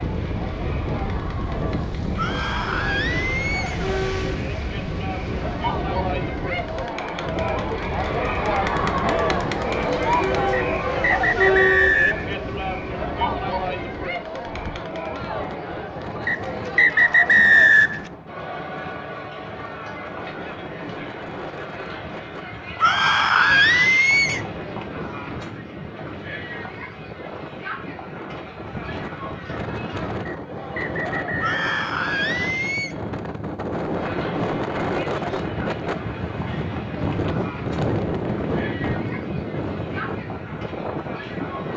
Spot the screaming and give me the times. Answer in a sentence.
You can hear the screaming from 2.1 to 3.8 s, from 22.8 to 24.4 s and from 31.4 to 33.0 s.